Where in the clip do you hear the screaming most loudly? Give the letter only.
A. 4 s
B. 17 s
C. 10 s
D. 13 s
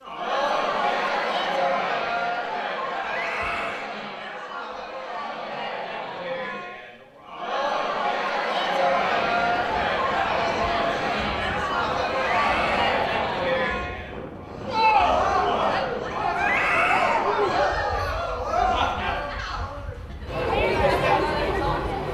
B.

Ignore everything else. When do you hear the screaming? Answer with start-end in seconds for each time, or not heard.
3.0-3.9, 12.2-12.8, 16.4-17.2.